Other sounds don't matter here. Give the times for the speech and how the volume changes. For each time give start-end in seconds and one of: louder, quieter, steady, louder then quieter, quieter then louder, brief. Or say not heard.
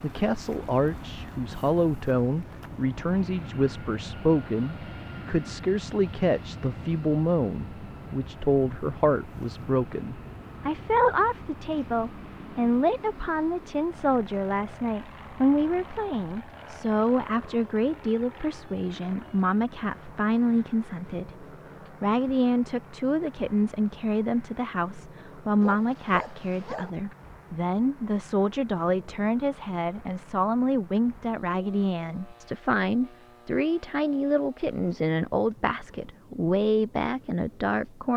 0.0-38.1 steady.